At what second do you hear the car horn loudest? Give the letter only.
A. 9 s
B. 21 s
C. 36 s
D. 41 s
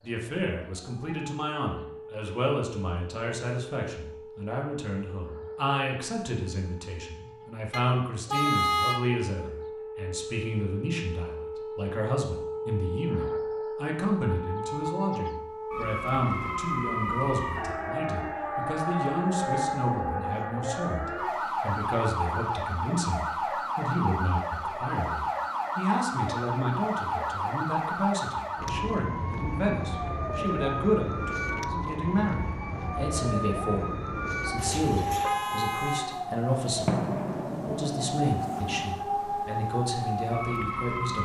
A.